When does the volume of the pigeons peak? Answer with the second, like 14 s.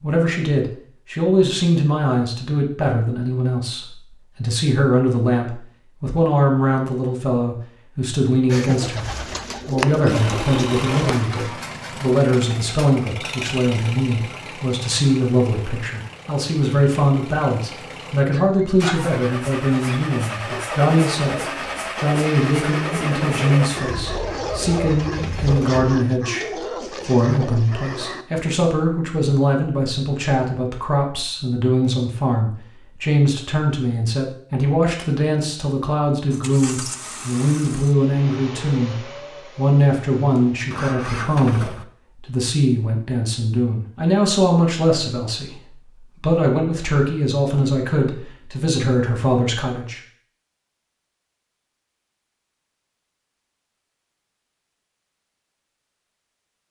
10 s.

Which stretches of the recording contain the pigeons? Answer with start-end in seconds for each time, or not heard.
8.4-11.2.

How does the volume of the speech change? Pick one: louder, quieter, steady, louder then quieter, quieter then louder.
steady.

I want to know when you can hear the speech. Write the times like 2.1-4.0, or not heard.
0.0-39.0, 39.5-50.0.